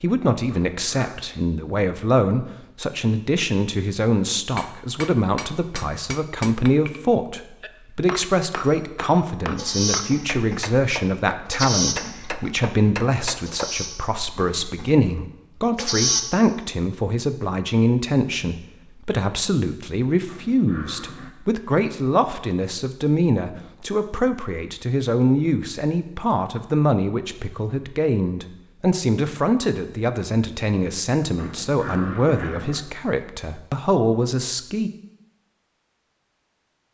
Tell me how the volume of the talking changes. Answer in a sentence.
The loudness of the talking stays about the same.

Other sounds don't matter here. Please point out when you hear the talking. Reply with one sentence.
You can hear the talking from 0.0 to 34.9 s.